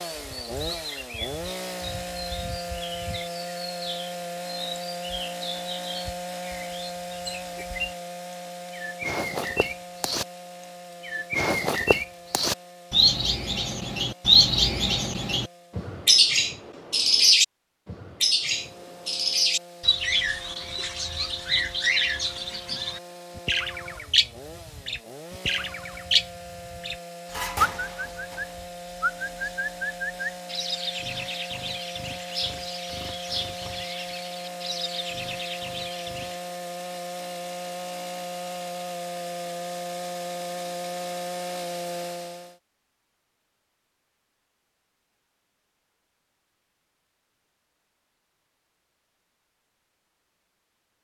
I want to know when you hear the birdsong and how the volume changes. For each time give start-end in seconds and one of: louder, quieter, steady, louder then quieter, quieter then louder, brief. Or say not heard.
0.0-10.2 louder
11.0-36.4 quieter.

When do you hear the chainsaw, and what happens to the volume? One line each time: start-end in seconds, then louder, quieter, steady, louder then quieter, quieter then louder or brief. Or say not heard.
0.0-15.9 quieter
18.4-42.5 louder.